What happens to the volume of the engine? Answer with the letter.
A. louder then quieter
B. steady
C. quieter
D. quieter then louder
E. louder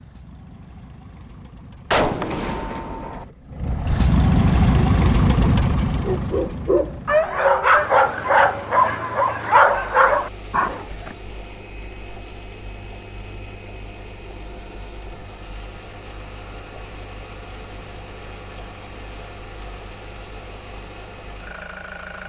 C.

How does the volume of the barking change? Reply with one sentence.
The loudness of the barking stays about the same.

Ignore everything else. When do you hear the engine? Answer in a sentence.
The engine can be heard from 0.0 to 22.2 s.